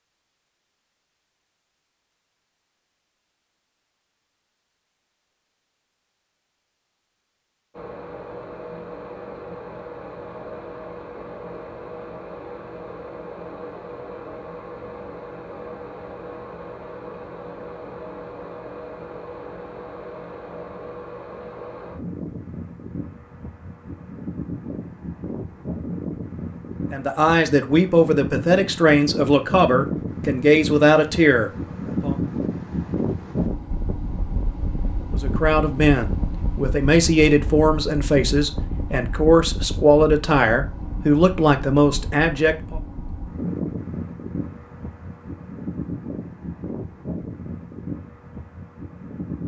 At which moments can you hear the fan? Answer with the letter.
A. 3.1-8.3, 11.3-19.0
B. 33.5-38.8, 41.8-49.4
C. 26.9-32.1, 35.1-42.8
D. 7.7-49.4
D.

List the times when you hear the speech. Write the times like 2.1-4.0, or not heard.
26.9-32.1, 35.1-42.8.